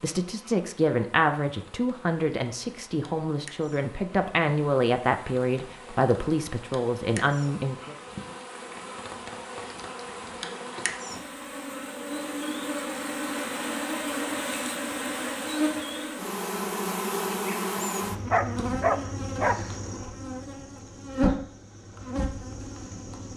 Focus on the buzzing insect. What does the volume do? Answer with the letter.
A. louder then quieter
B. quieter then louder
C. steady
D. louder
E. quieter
D.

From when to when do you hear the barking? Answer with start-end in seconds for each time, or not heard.
18.3-19.6.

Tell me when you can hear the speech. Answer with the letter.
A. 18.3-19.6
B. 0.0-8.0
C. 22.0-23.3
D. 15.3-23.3
B.